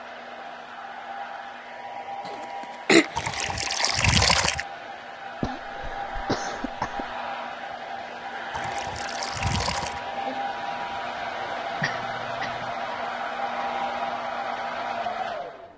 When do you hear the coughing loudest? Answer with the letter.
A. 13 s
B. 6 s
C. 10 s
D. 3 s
D.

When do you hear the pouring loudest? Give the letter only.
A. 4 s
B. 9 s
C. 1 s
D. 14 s
A.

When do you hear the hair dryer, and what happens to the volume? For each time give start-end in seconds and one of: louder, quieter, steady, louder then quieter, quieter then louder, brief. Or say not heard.
0.0-15.7 louder.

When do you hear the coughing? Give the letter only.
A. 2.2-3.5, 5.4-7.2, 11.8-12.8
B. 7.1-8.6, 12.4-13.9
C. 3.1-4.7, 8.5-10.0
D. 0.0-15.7
A.